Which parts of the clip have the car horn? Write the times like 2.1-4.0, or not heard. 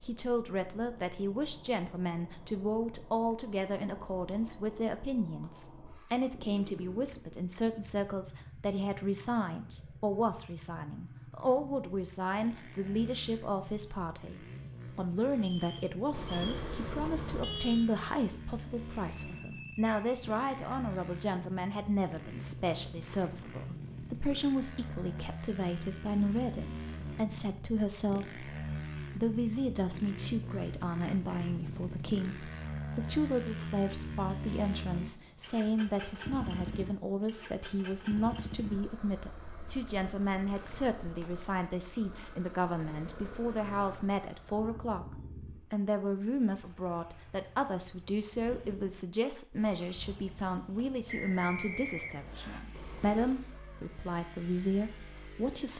16.1-17.9, 52.7-53.5.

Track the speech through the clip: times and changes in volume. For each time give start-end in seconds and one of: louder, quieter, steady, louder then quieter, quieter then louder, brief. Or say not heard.
0.0-55.7 steady.